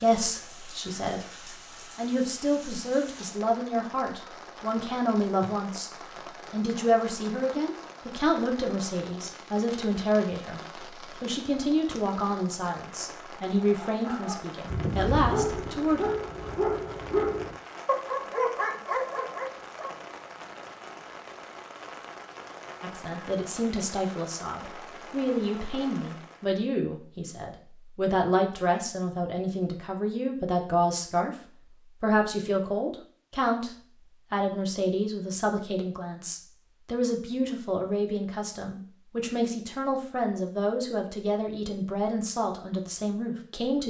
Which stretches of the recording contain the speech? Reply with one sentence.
You can hear the speech from 0.0 to 5.9 s, from 6.5 to 16.1 s, from 22.8 to 31.3 s and from 32.0 to 43.8 s.